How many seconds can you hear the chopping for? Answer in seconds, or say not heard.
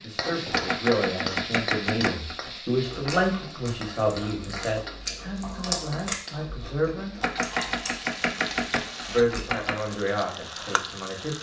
5 s.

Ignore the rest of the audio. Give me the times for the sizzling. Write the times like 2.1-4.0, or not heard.
0.0-11.3.